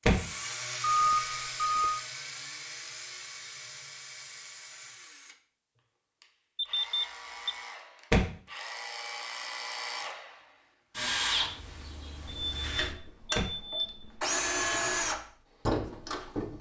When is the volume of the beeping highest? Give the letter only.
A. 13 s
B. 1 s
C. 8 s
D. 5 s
B.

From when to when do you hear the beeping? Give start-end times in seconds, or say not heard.
0.8-2.0, 6.5-7.5, 12.2-14.3.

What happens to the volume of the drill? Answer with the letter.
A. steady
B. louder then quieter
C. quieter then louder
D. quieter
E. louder
C.